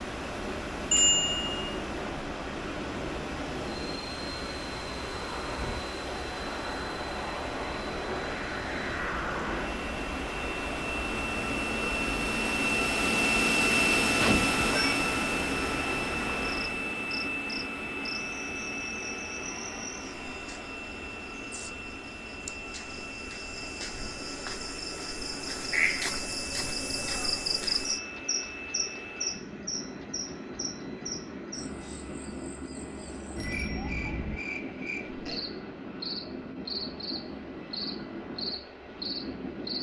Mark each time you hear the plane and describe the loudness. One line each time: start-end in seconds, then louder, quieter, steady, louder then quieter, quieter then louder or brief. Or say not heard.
0.0-39.7 louder then quieter.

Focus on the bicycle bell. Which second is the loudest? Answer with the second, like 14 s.
1 s.